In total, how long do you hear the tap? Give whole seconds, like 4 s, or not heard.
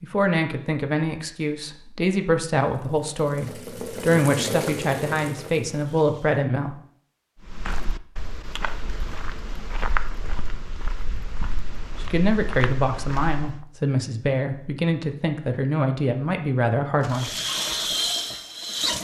6 s.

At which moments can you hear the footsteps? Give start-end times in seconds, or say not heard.
7.4-13.7.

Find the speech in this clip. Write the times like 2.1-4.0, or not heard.
0.0-6.8, 11.9-17.3.